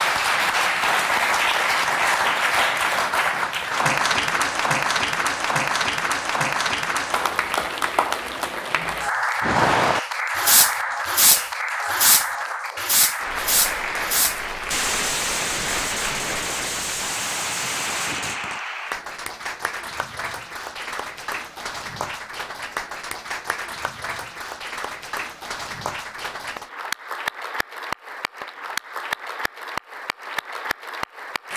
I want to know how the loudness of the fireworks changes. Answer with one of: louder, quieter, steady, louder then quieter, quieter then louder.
quieter.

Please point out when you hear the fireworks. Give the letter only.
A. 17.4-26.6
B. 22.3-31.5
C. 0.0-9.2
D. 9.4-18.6
D.